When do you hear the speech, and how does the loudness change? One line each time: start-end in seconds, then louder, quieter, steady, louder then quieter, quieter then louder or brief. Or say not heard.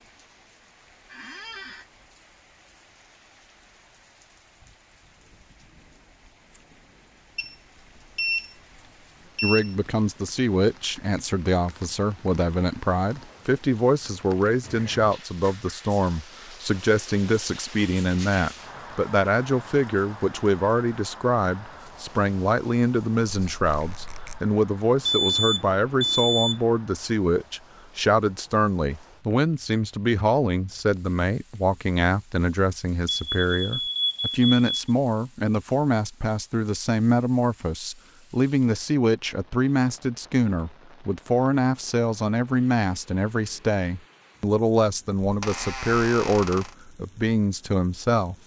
9.4-48.4 steady.